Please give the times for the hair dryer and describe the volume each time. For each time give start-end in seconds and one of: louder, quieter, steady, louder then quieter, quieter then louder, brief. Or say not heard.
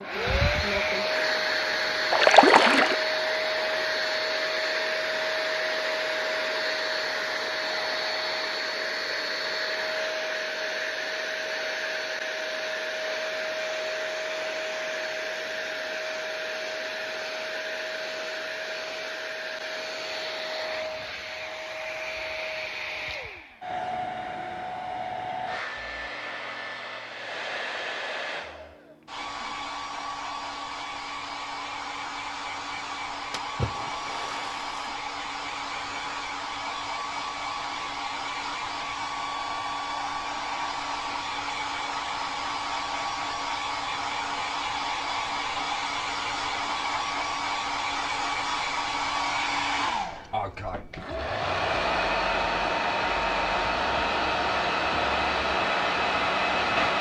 0.0-56.9 quieter then louder.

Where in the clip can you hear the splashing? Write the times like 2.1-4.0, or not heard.
2.1-3.0, 33.3-34.8.